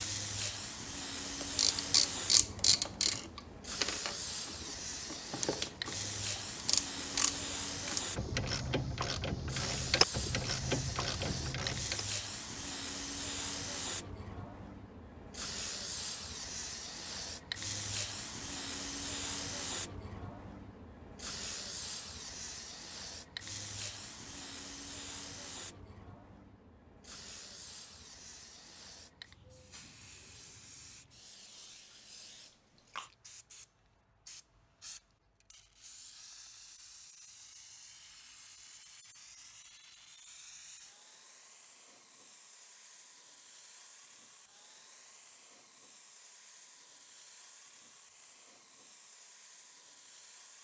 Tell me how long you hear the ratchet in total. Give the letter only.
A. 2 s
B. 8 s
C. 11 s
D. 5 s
C.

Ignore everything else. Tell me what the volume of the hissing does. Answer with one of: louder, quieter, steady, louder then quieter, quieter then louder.
quieter.